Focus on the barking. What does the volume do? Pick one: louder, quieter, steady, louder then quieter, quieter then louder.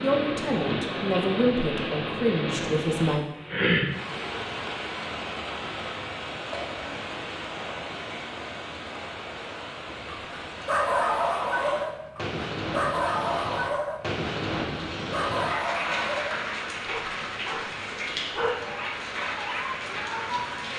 quieter.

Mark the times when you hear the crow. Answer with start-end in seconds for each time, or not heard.
not heard.